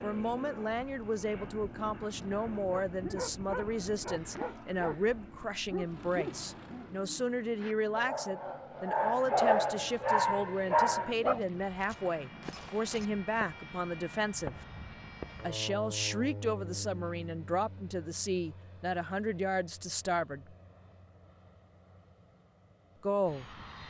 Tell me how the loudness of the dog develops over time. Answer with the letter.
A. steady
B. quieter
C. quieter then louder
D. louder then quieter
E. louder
C.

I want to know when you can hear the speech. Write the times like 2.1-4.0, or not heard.
0.0-14.6, 15.4-20.6, 23.0-23.6.